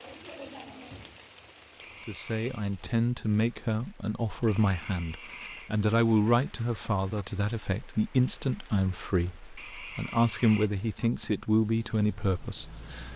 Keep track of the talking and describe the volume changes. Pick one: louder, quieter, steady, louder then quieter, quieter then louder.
steady.